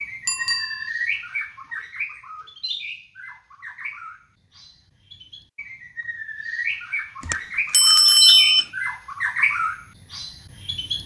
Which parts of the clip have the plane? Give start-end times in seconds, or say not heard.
not heard.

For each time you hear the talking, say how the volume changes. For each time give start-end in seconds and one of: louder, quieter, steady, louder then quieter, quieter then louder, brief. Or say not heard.
not heard.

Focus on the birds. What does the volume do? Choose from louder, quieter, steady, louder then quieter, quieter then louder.
quieter then louder.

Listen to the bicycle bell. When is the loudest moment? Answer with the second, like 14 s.
8 s.